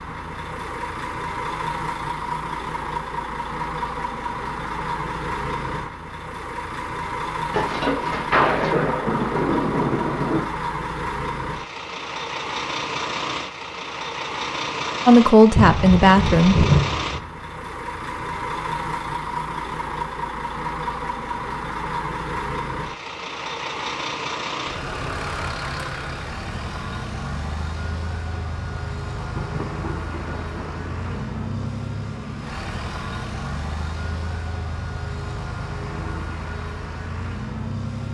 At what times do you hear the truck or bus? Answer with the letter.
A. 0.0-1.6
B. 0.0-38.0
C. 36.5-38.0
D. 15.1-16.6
B.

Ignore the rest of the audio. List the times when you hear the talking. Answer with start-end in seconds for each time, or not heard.
15.1-16.6.